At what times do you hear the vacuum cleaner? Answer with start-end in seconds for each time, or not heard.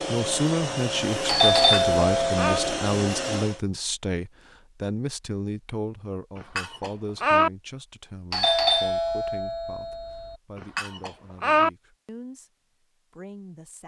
0.0-3.6.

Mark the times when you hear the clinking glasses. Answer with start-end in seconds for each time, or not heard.
1.5-2.6, 6.4-7.5, 10.6-11.7.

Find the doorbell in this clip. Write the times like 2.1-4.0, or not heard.
1.2-2.6, 8.3-10.3.